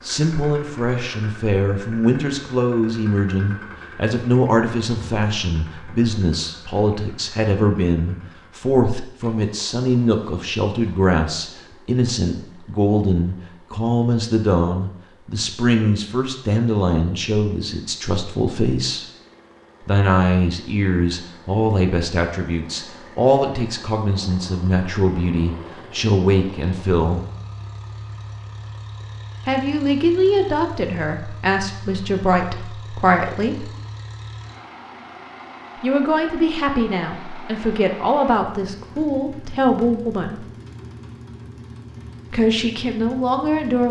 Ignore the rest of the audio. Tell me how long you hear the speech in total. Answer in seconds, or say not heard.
37 s.